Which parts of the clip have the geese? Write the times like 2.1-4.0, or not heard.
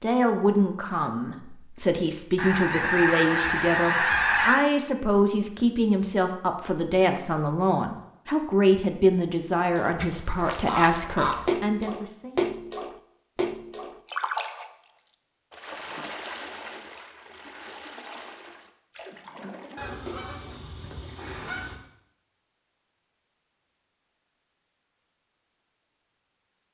2.4-4.7, 9.9-11.4, 19.8-21.8.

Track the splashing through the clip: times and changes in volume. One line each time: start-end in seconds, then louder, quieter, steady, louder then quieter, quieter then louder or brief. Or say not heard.
9.6-20.6 quieter.